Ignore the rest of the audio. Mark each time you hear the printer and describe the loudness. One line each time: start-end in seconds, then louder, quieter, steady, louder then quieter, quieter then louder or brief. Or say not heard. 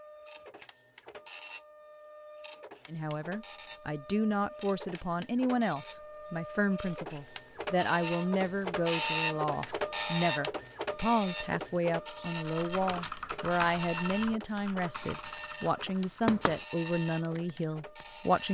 0.0-18.5 louder then quieter.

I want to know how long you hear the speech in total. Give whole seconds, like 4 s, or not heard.
16 s.